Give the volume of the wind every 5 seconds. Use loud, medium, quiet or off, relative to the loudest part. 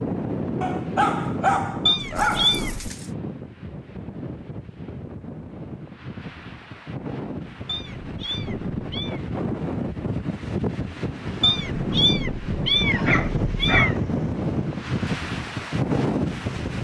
medium, medium, loud, loud.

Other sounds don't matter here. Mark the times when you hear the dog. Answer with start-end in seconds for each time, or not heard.
0.6-3.0, 12.8-14.3.